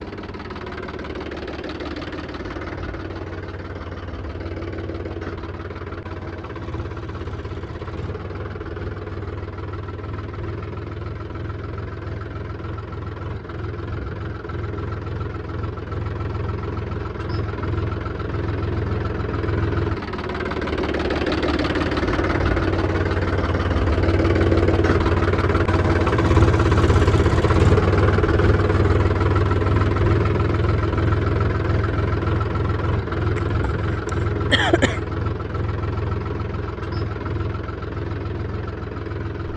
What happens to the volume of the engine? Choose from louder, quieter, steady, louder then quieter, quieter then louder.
louder then quieter.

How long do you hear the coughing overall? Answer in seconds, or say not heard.
2 s.